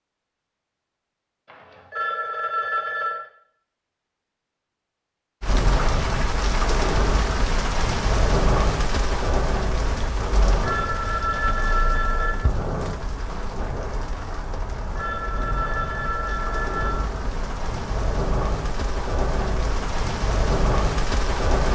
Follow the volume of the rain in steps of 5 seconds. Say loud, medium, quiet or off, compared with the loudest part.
off, loud, medium, medium, loud.